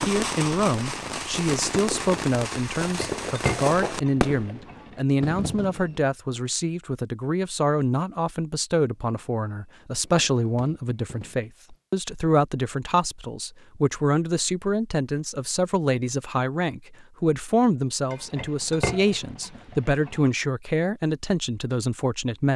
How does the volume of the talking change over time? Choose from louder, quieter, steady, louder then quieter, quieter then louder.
steady.